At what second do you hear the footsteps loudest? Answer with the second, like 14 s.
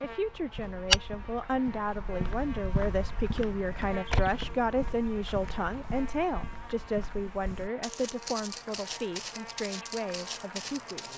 1 s.